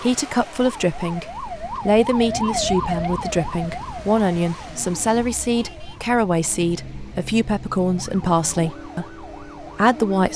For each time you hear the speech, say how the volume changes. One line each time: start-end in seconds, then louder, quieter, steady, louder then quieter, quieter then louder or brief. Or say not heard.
0.0-10.3 steady.